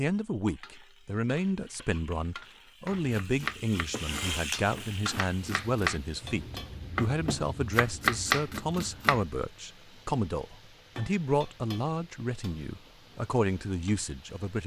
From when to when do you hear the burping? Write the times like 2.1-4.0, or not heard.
not heard.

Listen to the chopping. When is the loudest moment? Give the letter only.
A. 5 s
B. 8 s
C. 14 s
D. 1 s
B.